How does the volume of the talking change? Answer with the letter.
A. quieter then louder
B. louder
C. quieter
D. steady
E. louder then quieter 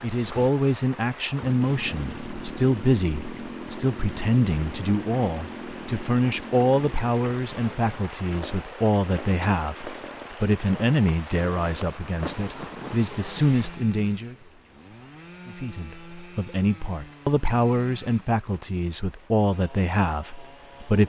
D.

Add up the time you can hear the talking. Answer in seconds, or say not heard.
20 s.